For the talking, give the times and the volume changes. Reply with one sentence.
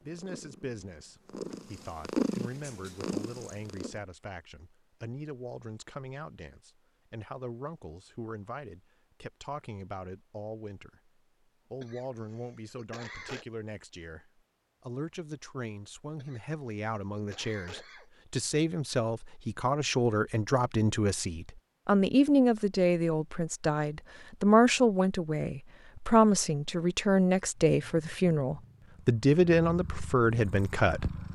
You can hear the talking from 0.0 to 11.1 s, at a steady volume; and from 11.7 to 31.1 s, getting louder.